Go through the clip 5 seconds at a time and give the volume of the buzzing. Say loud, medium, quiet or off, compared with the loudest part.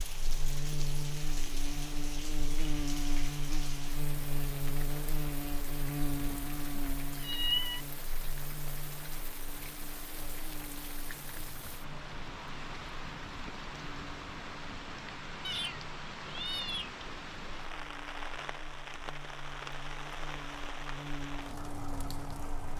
loud, loud, quiet, quiet, medium.